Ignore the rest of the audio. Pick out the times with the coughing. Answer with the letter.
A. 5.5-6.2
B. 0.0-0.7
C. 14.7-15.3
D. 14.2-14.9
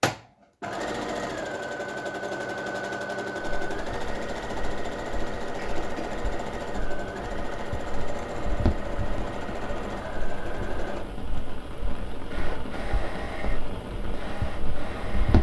A.